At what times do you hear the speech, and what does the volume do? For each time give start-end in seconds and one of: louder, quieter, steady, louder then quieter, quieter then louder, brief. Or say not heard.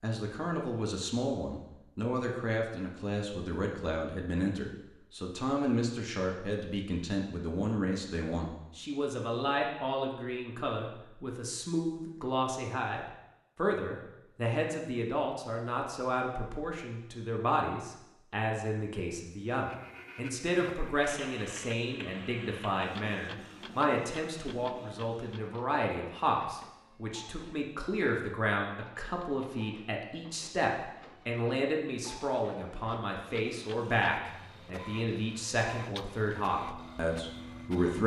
0.0-38.0 steady.